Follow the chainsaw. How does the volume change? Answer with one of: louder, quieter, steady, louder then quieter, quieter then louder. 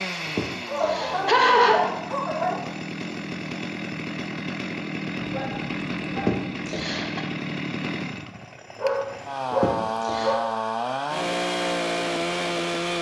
louder.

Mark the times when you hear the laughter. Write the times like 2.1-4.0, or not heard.
0.2-1.8, 6.2-7.2, 9.5-10.3.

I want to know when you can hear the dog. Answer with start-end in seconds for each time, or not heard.
0.7-2.7, 5.2-6.7, 8.8-10.3.